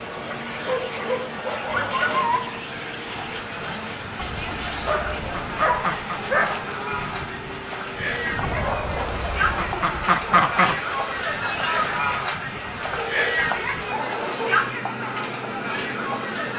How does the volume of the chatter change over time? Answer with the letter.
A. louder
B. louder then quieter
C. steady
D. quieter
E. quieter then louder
A.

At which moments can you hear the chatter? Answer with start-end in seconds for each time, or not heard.
0.0-16.5.